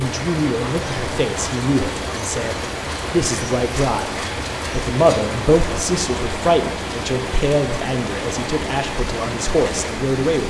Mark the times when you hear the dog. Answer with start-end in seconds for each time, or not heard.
not heard.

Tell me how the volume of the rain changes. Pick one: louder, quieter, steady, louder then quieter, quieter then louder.
steady.